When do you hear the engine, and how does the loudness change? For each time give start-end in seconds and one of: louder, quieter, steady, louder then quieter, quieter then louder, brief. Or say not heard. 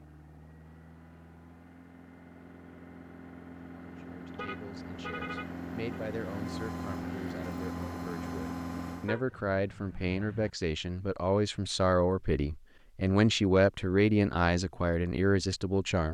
0.0-9.2 louder.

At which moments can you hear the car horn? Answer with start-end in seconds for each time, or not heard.
4.3-6.0, 9.1-10.5.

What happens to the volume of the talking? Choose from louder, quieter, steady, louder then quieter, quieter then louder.
louder.